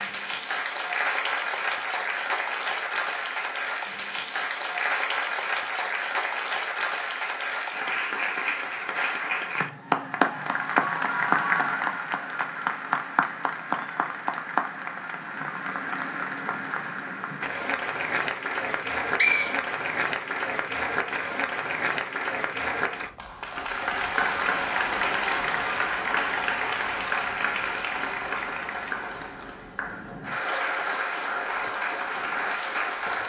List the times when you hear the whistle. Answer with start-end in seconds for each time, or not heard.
18.6-20.3.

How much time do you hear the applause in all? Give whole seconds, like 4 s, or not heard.
33 s.